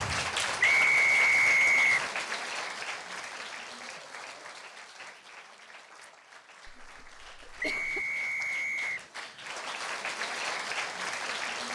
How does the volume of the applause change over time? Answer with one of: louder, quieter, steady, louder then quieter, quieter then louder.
quieter then louder.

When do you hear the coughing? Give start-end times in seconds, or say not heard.
6.7-8.1.